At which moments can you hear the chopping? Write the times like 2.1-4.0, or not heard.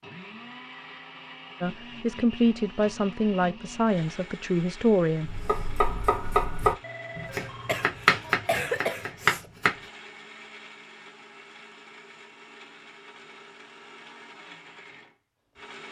5.2-9.8.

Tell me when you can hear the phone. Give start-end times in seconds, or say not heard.
6.8-7.8.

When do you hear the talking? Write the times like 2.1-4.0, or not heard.
1.6-5.3.